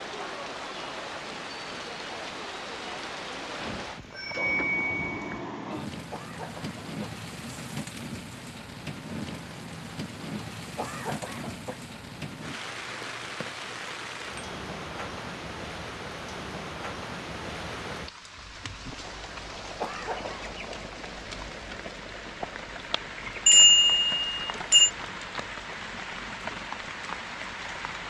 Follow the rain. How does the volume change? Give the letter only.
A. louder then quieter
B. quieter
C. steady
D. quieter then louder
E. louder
C.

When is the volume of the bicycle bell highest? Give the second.
24 s.